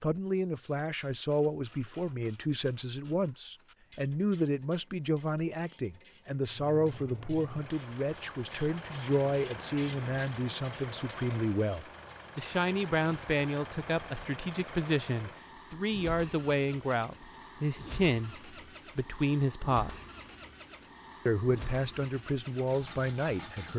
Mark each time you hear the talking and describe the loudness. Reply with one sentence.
The talking can be heard from 0.0 to 20.0 s, at a steady volume; and briefly from 21.2 to 23.7 s.